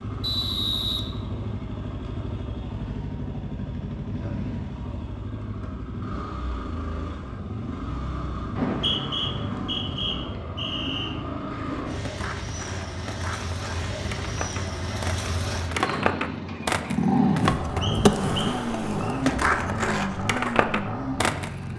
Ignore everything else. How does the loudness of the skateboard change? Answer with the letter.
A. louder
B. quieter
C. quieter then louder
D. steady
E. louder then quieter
A.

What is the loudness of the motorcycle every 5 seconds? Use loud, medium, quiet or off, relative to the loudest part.
medium, medium, medium, loud, loud.